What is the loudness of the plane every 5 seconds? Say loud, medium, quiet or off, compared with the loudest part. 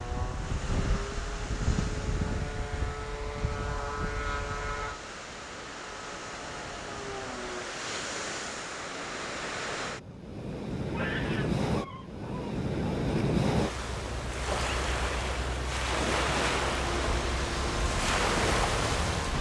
loud, medium, off, loud.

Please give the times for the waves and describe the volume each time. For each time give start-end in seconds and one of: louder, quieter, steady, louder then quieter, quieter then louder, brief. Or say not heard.
0.0-19.3 louder.